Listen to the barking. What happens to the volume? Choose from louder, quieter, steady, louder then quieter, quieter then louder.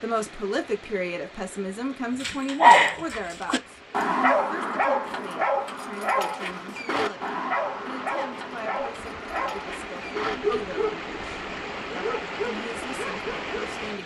quieter.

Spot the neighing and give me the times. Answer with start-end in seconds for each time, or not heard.
not heard.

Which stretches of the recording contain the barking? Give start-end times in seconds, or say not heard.
2.2-13.7.